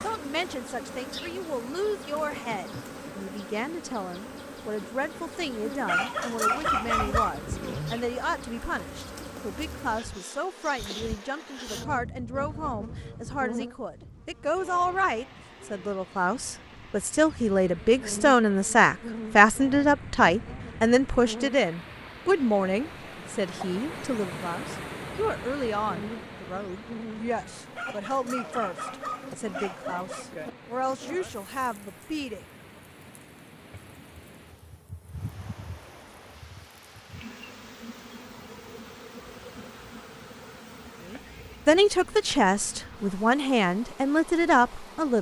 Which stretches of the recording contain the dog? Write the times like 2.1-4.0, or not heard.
5.8-7.3, 27.8-30.2.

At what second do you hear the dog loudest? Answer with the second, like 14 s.
7 s.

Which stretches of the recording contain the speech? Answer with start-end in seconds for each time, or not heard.
0.0-32.4, 41.1-45.1.